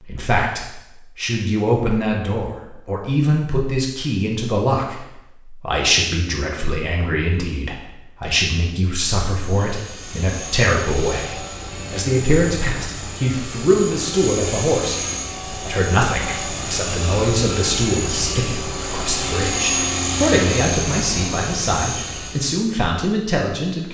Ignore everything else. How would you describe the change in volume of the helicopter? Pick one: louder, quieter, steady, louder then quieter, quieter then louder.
louder.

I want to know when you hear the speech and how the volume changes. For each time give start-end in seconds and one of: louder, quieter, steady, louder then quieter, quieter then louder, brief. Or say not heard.
0.0-23.8 steady.